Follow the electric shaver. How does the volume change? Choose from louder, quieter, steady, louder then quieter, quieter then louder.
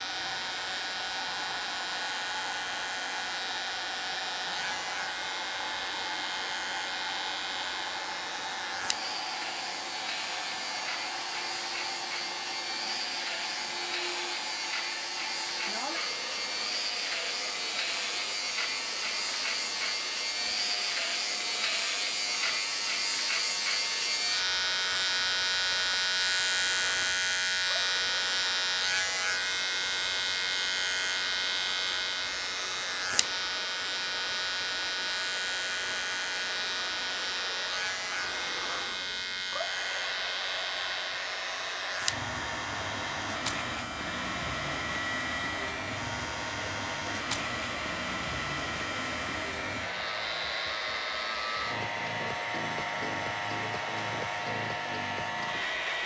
louder then quieter.